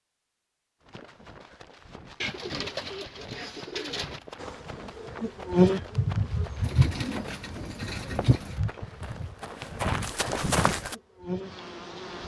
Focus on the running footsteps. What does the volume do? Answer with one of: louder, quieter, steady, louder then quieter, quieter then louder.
louder.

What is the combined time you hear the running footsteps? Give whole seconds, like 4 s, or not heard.
10 s.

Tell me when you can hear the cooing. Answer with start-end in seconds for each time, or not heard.
2.2-4.2, 6.6-8.6.